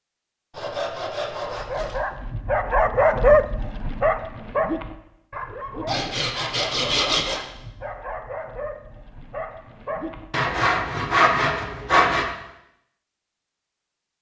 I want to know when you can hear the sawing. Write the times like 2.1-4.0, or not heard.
0.5-2.0, 5.8-7.4, 10.3-12.3.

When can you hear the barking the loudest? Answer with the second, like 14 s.
3 s.